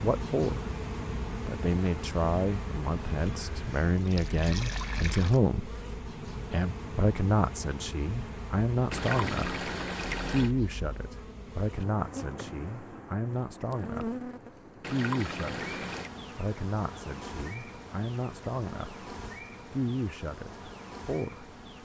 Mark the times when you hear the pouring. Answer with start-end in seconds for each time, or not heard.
3.1-5.4, 8.9-10.6, 14.8-16.1.